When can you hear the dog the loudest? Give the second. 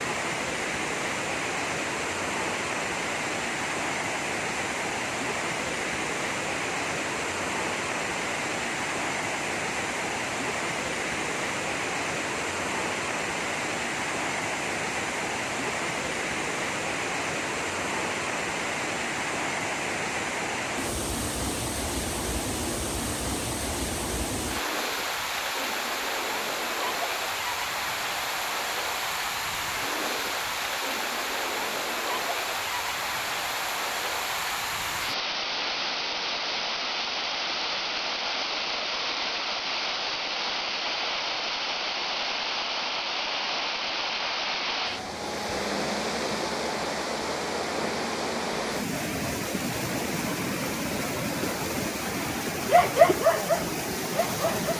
53 s.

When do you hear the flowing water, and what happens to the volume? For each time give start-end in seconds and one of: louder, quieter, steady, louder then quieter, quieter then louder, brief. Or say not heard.
0.0-54.7 steady.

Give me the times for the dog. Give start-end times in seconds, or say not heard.
52.6-54.7.